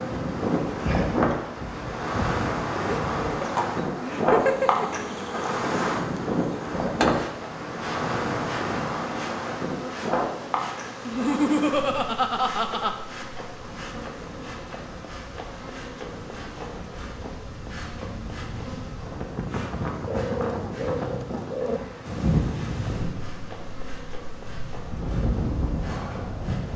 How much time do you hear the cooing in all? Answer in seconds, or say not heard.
2 s.